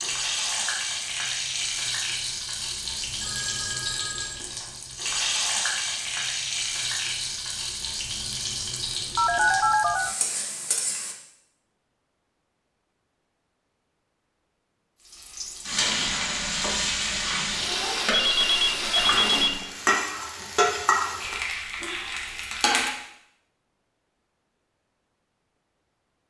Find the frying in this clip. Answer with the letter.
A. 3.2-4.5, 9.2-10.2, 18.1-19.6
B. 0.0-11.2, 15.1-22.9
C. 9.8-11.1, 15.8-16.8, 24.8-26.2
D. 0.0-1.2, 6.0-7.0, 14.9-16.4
B.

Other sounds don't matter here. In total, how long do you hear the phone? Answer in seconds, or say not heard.
4 s.